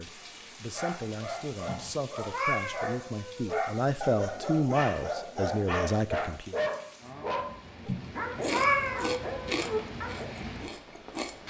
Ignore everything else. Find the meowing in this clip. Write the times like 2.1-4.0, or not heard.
1.6-3.6, 7.8-9.8.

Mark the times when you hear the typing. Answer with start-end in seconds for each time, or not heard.
not heard.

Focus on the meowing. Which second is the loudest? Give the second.
9 s.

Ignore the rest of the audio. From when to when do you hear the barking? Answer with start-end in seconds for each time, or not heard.
0.2-10.3.